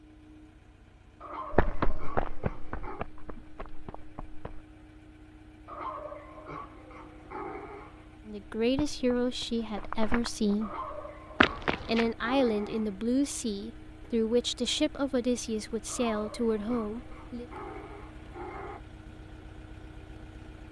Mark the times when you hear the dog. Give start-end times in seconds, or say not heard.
1.2-3.0, 5.7-8.2, 10.6-12.9, 15.8-18.8.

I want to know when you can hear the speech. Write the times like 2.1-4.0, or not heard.
8.2-10.8, 11.8-17.4.